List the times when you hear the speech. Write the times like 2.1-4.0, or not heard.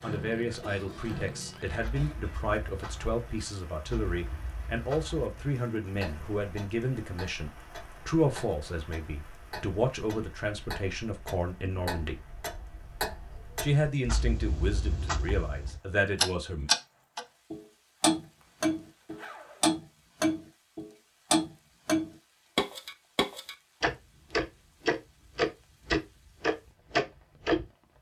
0.0-12.2, 13.6-16.7.